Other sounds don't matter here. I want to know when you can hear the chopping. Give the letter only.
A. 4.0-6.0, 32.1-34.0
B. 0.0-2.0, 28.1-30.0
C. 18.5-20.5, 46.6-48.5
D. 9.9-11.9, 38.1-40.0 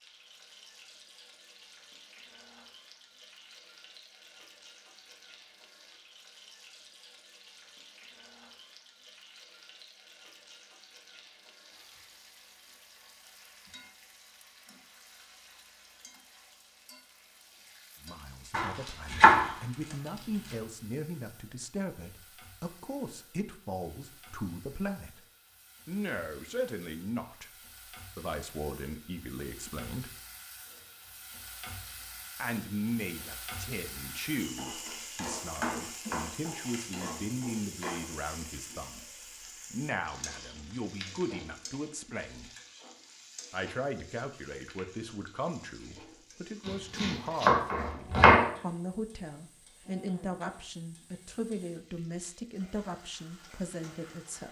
C.